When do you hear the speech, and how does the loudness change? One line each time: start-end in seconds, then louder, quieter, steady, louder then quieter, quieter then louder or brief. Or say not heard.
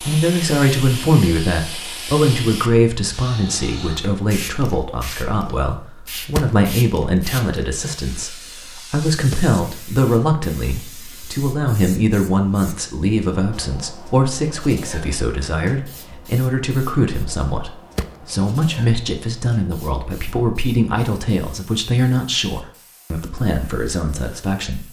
0.0-24.8 steady.